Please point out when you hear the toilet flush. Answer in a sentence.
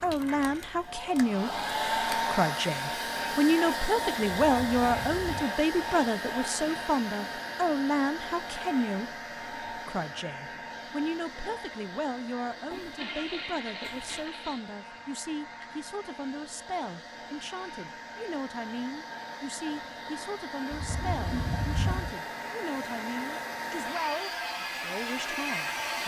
You can hear the toilet flush from 4.3 to 5.5 s, from 12.7 to 14.6 s and from 20.7 to 22.1 s.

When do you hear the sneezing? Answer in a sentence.
You can't hear the sneezing here.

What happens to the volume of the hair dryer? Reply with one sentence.
The volume of the hair dryer goes down, then up.